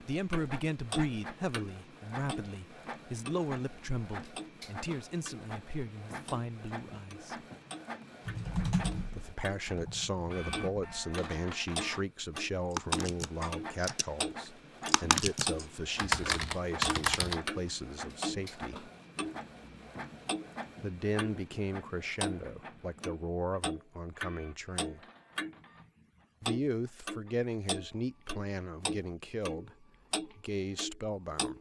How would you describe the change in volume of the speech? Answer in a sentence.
The volume of the speech stays about the same.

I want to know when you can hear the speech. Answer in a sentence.
The speech can be heard from 0.0 to 7.3 s, from 9.2 to 18.9 s, from 20.8 to 25.0 s and from 26.4 to 31.5 s.